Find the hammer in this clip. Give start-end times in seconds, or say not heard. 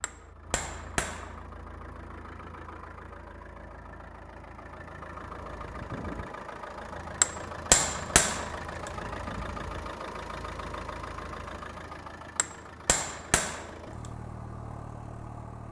0.0-1.3, 7.2-8.9, 12.3-13.7.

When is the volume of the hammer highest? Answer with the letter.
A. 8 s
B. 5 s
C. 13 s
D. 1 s
A.